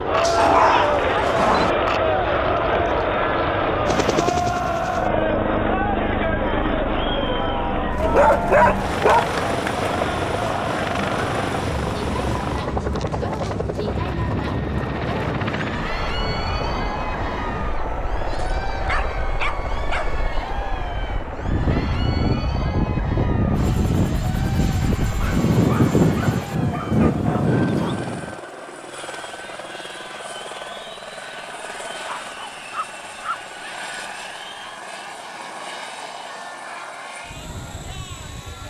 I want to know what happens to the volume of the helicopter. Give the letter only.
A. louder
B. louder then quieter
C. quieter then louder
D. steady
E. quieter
E.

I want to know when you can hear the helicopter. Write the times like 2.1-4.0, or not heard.
0.0-38.6.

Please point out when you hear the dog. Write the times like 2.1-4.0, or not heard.
0.2-1.7, 8.0-10.1, 18.3-20.1, 25.2-28.1, 32.0-33.4.